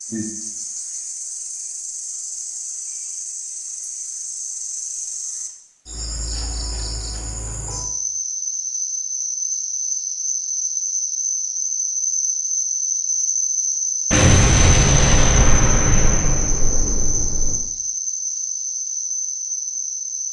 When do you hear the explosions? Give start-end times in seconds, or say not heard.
14.1-17.6.